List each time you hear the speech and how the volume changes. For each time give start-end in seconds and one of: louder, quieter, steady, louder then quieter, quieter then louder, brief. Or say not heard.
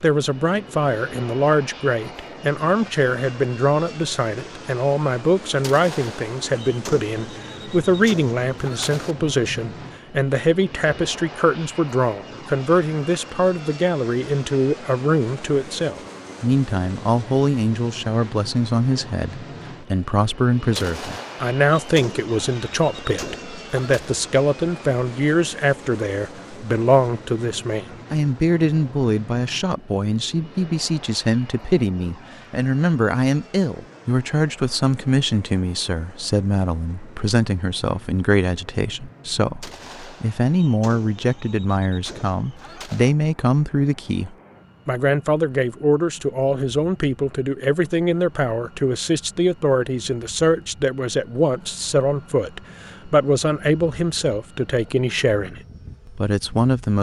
0.0-56.9 steady.